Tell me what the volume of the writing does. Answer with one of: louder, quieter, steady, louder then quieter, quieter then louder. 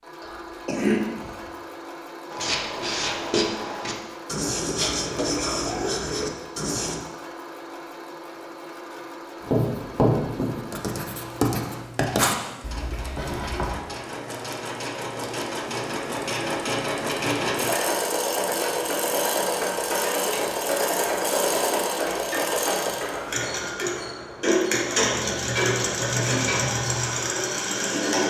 steady.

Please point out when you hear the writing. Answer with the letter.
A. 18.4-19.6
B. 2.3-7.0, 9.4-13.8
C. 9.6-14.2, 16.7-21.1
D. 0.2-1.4
B.